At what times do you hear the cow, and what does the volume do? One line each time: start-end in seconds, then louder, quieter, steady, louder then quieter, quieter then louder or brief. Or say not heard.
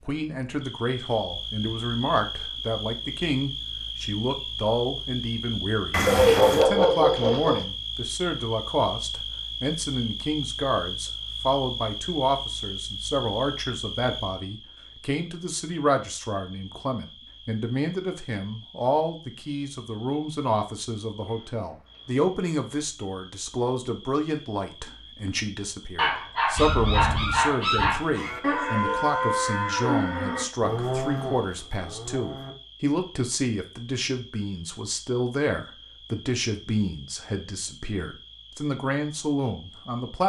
26.6-32.5 louder then quieter.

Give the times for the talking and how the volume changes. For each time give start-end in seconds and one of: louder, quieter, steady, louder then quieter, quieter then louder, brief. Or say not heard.
0.1-40.2 steady.